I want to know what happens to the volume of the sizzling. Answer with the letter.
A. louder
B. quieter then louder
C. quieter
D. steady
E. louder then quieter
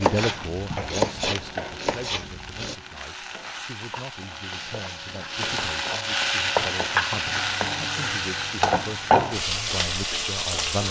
A.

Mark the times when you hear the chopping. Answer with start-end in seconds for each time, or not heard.
0.0-2.8.